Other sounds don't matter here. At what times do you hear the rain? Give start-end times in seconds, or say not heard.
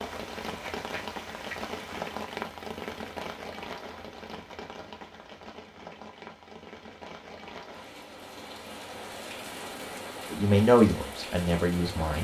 0.0-12.1.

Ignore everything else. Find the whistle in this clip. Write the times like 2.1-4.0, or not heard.
not heard.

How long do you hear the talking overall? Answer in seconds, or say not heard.
2 s.